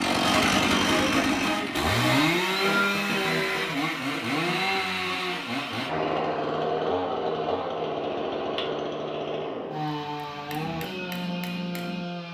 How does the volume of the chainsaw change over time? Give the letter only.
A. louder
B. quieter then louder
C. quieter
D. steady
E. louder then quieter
C.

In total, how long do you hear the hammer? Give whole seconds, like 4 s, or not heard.
2 s.